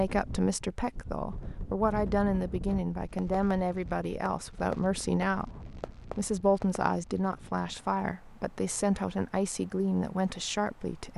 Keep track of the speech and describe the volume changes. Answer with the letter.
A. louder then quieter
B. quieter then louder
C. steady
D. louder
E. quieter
C.